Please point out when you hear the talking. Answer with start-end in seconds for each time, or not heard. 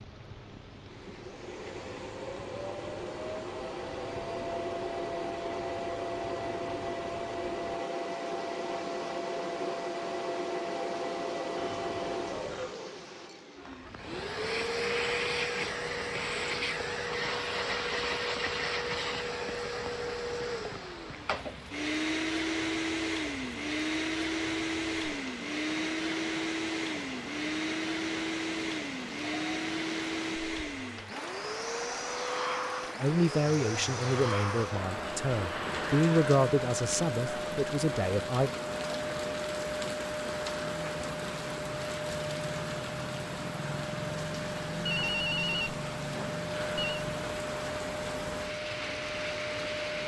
33.0-38.5.